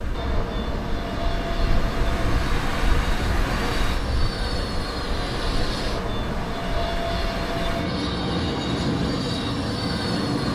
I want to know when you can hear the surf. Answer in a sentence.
The surf can be heard from 0.0 to 10.5 s.